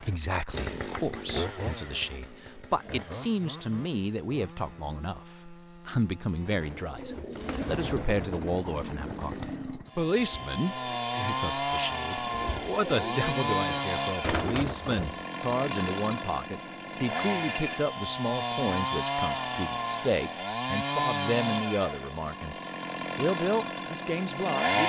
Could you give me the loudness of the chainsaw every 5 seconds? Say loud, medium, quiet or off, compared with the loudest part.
medium, quiet, loud, loud, loud.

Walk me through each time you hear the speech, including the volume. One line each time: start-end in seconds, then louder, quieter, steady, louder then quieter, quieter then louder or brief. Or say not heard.
0.0-22.6 steady
23.1-24.8 brief.